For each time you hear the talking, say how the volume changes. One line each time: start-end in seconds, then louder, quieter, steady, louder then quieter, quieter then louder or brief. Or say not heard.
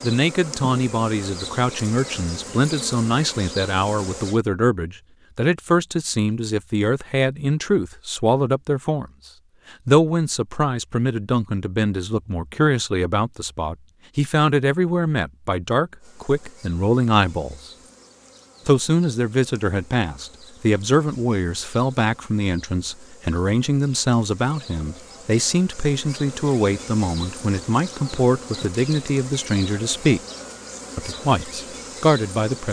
0.0-9.1 steady
9.8-17.7 steady
18.6-30.2 steady
30.9-32.6 brief.